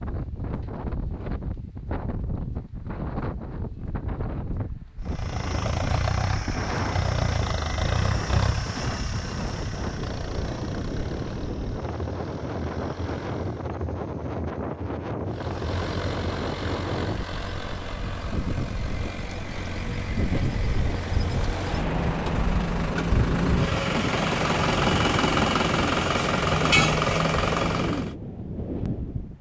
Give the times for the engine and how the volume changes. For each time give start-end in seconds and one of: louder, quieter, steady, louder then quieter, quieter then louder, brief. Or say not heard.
5.0-13.7 quieter
15.2-28.1 louder.